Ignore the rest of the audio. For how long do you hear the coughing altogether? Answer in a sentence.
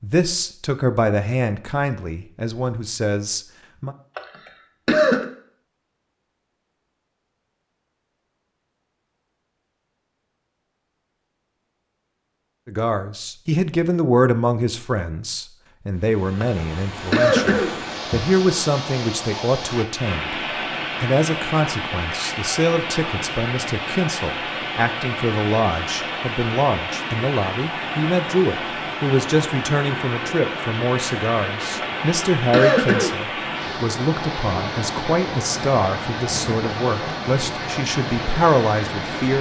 You can hear the coughing for 3 seconds altogether.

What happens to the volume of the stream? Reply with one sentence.
The loudness of the stream stays about the same.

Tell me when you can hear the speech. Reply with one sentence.
You can hear the speech from 0.0 to 4.0 s, from 12.7 to 20.4 s and from 21.0 to 39.3 s.